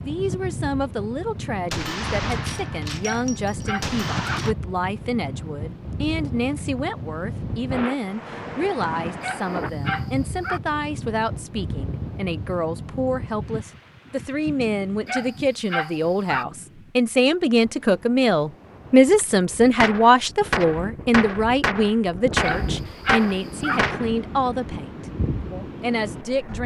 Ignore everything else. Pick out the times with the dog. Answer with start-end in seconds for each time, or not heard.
3.0-4.4, 9.2-10.6, 15.1-16.4, 22.4-23.8.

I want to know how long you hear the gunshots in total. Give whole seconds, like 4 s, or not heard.
7 s.